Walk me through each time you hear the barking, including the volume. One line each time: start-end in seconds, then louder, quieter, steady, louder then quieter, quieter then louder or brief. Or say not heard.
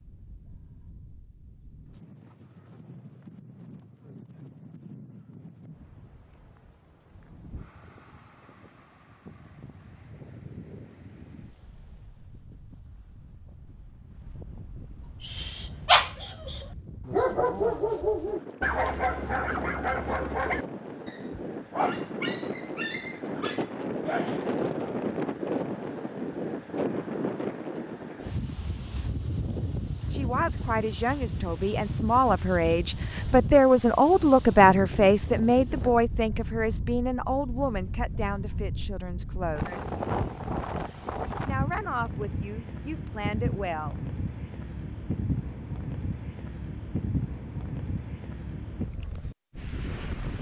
15.2-24.9 quieter.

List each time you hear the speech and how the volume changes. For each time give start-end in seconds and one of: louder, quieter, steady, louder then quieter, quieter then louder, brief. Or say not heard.
30.1-39.9 louder then quieter
41.5-44.0 brief.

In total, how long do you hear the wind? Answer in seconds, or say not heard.
50 s.